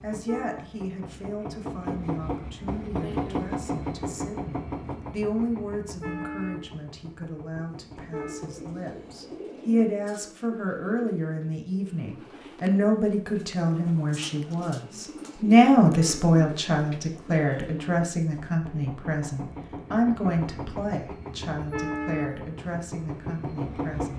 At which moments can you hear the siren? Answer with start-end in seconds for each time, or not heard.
not heard.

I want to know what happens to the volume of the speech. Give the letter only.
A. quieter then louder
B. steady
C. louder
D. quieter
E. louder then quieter
E.